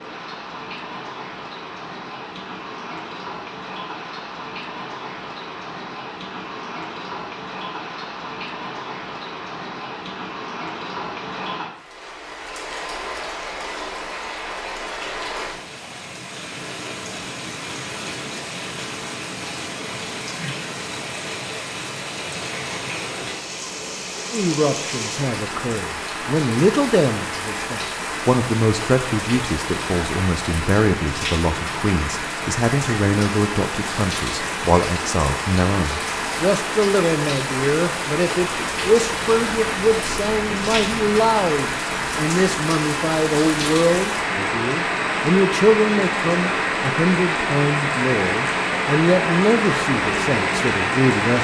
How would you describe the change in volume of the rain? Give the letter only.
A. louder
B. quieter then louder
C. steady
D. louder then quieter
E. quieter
A.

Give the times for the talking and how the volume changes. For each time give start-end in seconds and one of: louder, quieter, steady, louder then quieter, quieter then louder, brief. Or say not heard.
24.3-51.3 steady.